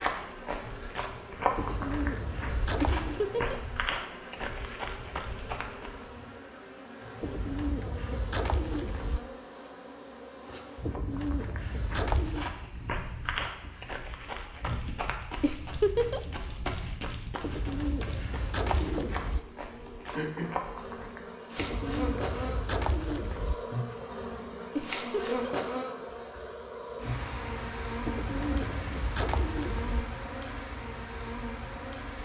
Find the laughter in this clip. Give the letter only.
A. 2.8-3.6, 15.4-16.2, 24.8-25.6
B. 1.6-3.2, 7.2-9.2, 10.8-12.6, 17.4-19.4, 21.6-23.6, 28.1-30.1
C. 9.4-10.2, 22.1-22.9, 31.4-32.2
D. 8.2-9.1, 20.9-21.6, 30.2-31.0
A.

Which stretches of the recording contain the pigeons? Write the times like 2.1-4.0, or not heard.
1.6-3.2, 7.2-9.2, 10.8-12.6, 17.4-19.4, 21.6-23.6, 28.1-30.1.